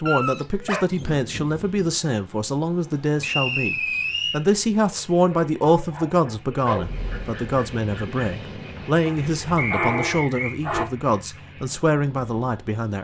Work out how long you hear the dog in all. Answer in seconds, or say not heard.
6 s.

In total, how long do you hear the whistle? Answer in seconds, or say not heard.
2 s.